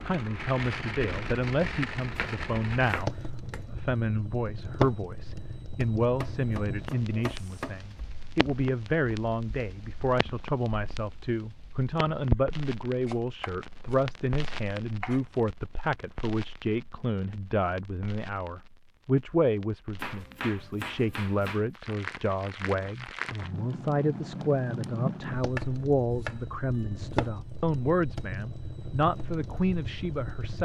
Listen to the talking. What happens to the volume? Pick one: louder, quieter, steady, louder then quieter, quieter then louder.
steady.